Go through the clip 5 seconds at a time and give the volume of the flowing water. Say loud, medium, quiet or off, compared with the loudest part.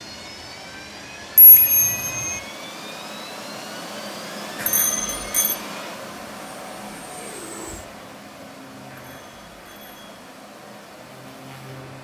loud, loud, medium.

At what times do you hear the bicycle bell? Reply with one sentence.
The bicycle bell can be heard from 1.4 to 2.4 s, from 4.6 to 5.5 s and from 8.9 to 10.2 s.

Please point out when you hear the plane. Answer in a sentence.
You can hear the plane from 0.0 to 11.9 s.